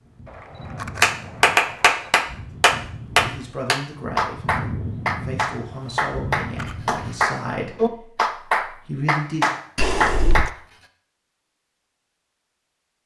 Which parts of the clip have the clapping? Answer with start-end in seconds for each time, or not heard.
1.0-10.5.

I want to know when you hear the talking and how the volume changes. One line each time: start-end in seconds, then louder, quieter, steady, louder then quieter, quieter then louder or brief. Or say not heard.
3.2-9.4 steady.